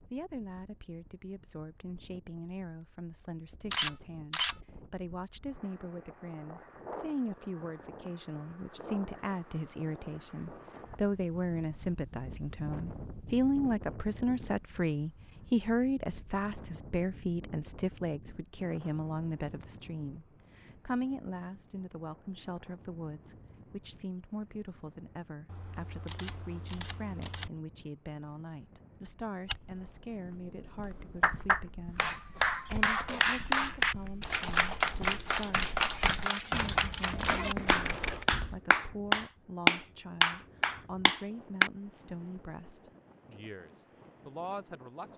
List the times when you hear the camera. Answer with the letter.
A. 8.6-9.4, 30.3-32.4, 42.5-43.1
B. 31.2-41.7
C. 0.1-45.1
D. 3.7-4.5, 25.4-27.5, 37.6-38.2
D.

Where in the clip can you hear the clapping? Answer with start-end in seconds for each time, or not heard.
31.2-41.7.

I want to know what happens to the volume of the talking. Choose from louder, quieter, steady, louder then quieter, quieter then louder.
louder then quieter.